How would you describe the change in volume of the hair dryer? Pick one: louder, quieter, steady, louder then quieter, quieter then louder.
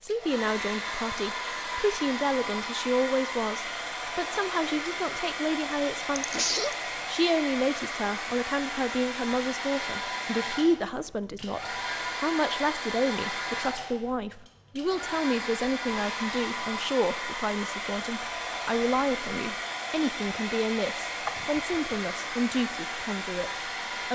steady.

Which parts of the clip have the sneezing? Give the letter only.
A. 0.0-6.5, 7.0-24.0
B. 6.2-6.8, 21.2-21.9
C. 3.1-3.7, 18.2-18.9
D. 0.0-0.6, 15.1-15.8
B.